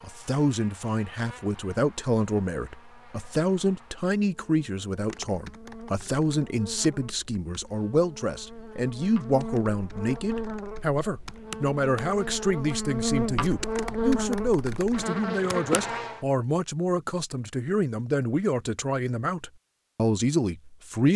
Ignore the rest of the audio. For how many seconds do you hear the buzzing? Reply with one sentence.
The buzzing can be heard for 16 seconds in total.